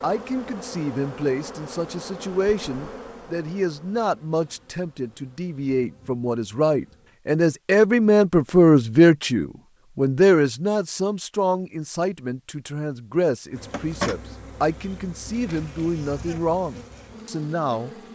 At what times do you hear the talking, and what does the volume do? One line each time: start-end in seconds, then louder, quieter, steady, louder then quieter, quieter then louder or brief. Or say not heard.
0.0-17.9 louder then quieter.